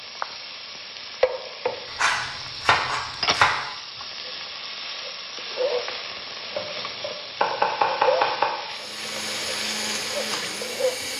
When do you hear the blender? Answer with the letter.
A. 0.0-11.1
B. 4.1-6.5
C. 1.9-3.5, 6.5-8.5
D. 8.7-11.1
D.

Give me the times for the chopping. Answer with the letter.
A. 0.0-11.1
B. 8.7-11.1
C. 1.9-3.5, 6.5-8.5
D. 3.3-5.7
C.